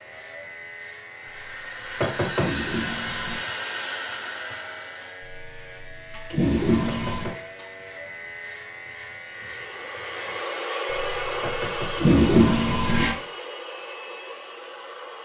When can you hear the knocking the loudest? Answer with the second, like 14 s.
2 s.